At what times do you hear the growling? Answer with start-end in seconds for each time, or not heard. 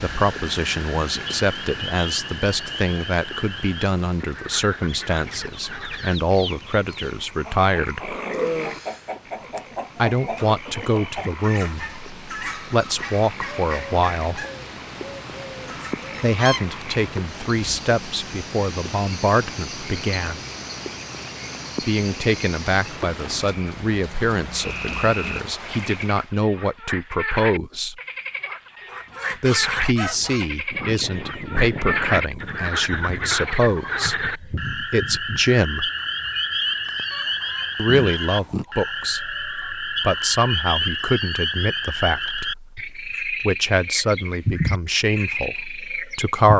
8.0-8.8, 37.9-38.6.